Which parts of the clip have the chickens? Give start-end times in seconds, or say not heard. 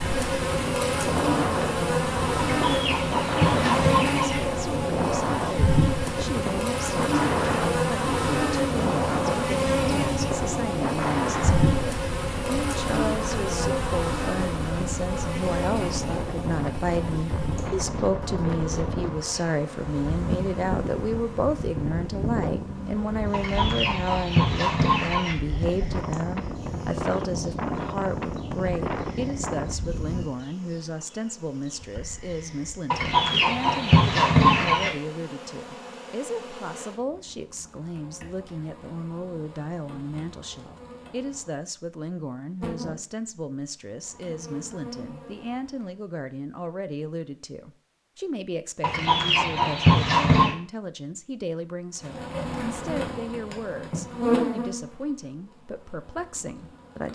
2.5-4.4, 23.3-25.4, 32.9-34.9, 48.8-50.5.